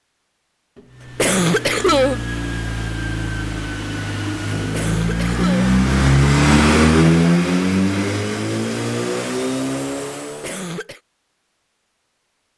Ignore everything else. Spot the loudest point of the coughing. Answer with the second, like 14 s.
2 s.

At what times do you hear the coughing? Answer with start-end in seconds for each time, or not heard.
1.1-2.2, 4.7-5.8, 10.4-11.0.